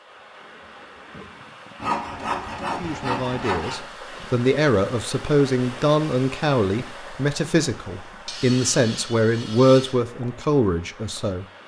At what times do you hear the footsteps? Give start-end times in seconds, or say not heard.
not heard.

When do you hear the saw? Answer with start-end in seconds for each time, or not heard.
1.8-3.9, 8.2-9.9.